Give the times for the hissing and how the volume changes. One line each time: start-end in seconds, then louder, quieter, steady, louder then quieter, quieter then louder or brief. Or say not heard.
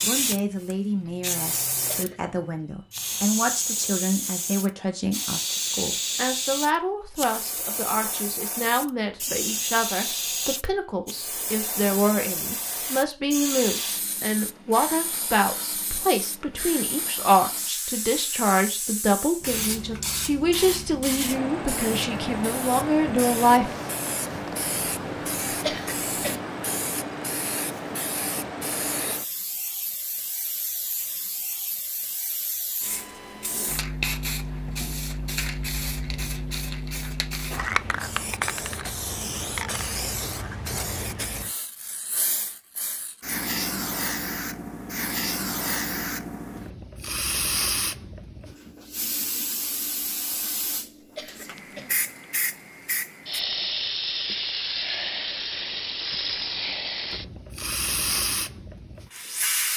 0.0-59.7 steady.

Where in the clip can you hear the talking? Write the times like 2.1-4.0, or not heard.
0.0-23.7.